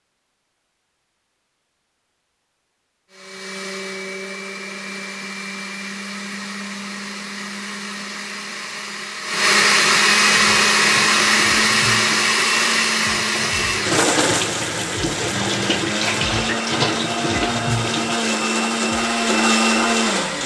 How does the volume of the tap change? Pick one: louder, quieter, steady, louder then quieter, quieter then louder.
louder then quieter.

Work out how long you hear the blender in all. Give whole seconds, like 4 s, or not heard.
17 s.